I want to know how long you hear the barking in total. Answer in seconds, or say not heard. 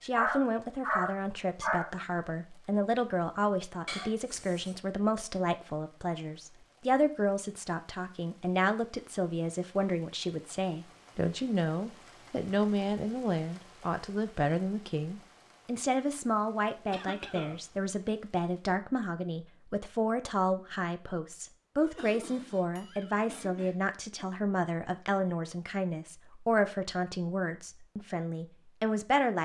2 s.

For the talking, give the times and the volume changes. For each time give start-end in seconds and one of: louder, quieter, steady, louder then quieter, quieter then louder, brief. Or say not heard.
0.0-29.3 steady.